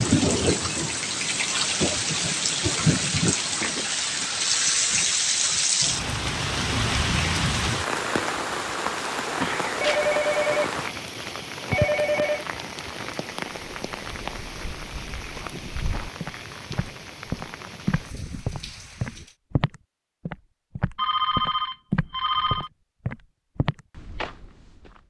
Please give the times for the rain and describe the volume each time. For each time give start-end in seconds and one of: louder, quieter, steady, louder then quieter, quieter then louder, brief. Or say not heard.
0.0-19.4 quieter.